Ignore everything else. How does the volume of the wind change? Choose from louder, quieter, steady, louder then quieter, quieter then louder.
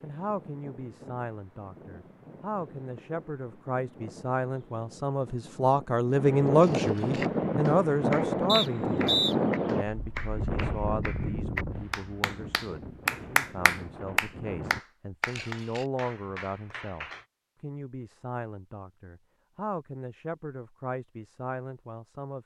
louder then quieter.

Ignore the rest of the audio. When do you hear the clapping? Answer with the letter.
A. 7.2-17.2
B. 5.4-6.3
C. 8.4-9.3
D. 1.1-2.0
A.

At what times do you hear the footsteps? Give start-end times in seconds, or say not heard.
not heard.